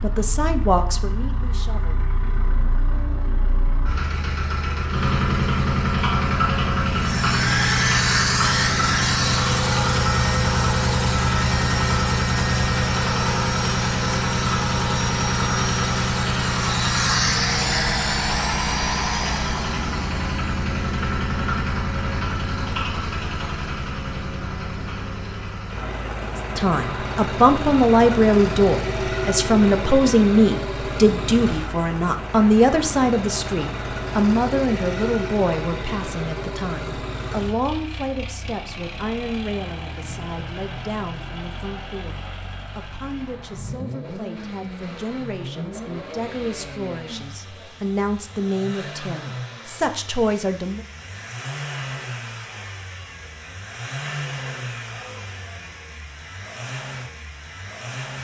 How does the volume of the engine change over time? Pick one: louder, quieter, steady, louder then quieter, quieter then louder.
quieter.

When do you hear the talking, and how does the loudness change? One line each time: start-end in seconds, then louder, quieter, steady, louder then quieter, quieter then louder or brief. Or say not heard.
0.0-2.1 brief
26.6-50.9 quieter then louder.